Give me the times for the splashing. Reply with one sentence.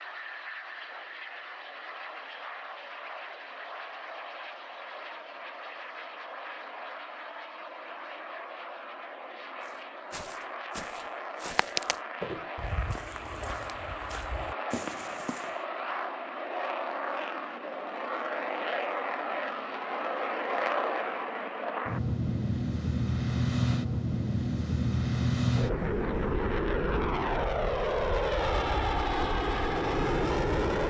You can't hear the splashing here.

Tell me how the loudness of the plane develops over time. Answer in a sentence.
The loudness of the plane goes up.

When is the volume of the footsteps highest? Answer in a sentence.
The loudest moment of the footsteps is at 12 seconds.